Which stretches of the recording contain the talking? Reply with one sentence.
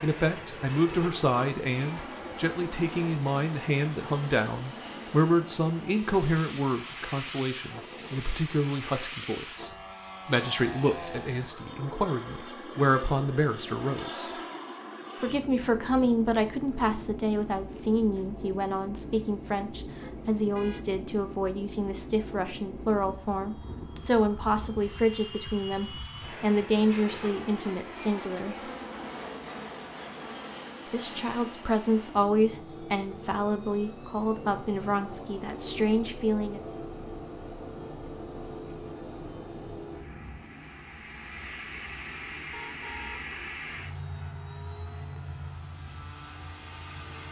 You can hear the talking from 0.0 to 14.3 s, from 15.2 to 28.7 s and from 30.9 to 36.6 s.